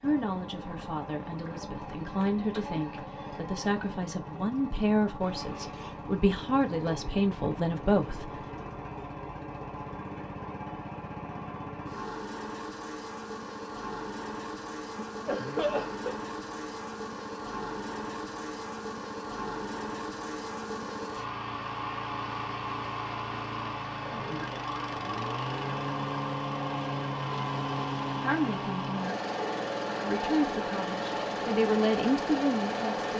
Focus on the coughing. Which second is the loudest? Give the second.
16 s.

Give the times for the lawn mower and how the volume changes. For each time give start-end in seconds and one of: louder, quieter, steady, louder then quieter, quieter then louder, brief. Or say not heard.
0.0-33.1 louder.